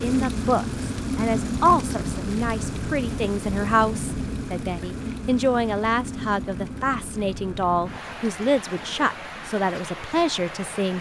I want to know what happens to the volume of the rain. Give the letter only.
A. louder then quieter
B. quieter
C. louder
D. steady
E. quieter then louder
B.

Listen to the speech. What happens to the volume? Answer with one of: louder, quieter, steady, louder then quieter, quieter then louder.
steady.